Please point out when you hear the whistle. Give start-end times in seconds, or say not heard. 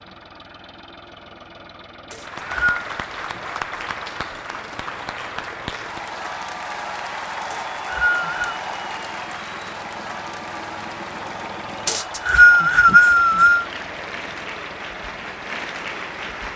2.1-2.8, 7.5-8.6, 11.8-13.7.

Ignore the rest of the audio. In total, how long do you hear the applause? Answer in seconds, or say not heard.
14 s.